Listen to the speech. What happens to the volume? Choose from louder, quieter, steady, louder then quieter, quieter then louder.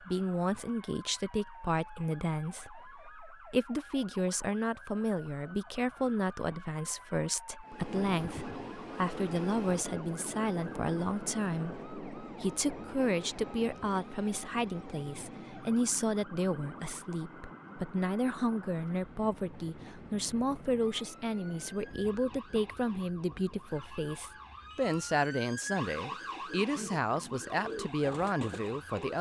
steady.